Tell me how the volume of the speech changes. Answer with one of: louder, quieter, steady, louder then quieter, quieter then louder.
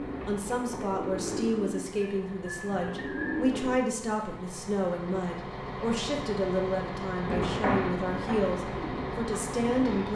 steady.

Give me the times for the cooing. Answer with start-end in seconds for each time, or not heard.
0.0-3.8, 7.2-10.0.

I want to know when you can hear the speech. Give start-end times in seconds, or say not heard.
0.1-10.0.